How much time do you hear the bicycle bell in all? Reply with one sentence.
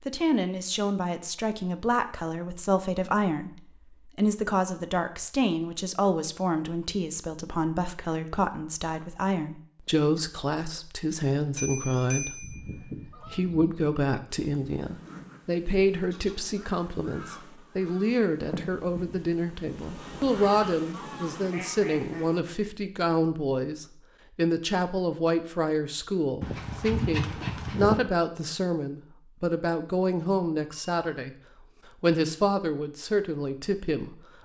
The bicycle bell can be heard for 2 seconds in total.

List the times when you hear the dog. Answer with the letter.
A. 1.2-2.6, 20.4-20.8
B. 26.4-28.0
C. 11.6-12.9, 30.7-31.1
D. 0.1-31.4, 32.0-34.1
B.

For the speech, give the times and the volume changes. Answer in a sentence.
You can hear the speech from 0.1 to 31.4 s, at a steady volume; and briefly from 32.0 to 34.1 s.